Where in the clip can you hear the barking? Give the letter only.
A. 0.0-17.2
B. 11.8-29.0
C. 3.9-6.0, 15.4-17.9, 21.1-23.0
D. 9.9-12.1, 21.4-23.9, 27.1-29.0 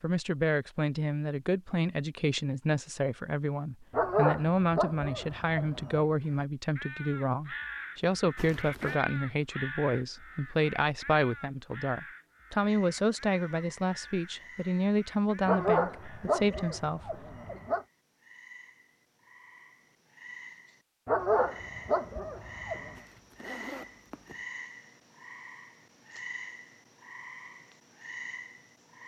C.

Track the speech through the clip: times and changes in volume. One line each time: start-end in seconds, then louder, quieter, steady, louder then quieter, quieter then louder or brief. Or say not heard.
0.0-17.2 steady.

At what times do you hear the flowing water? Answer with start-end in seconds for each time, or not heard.
not heard.